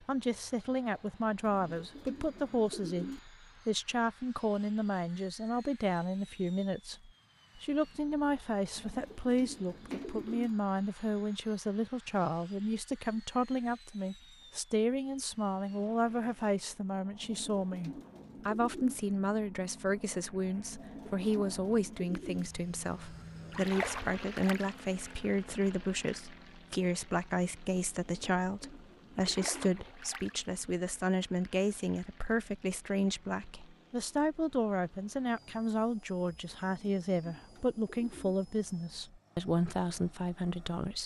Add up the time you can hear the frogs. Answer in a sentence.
You can't hear the frogs here.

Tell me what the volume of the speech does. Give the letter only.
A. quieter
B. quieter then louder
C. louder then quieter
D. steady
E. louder
D.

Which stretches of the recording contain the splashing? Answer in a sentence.
You can hear the splashing from 9.9 to 10.4 s, from 23.5 to 24.7 s and from 29.1 to 30.4 s.